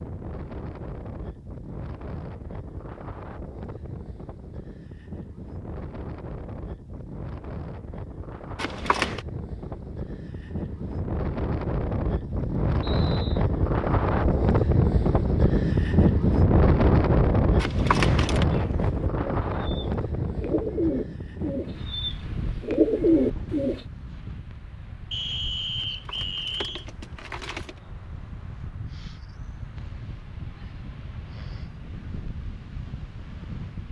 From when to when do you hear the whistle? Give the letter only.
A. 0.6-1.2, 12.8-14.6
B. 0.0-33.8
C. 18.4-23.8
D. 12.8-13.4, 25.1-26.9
D.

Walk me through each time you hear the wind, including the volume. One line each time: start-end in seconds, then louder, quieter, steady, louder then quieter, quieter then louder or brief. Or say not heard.
0.0-33.8 louder then quieter.